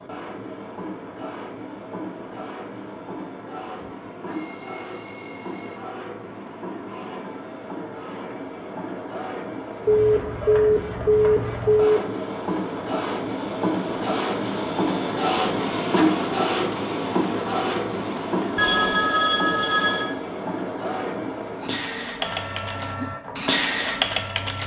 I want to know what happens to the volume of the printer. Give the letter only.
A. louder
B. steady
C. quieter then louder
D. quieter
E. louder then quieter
E.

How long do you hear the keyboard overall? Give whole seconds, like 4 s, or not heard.
3 s.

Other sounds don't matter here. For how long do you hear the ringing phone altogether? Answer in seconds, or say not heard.
5 s.